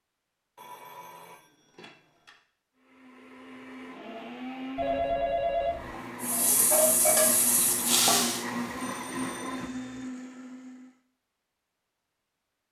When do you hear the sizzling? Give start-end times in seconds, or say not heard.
6.2-8.4.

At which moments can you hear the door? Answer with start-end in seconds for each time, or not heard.
not heard.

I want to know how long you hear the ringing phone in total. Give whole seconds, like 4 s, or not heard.
4 s.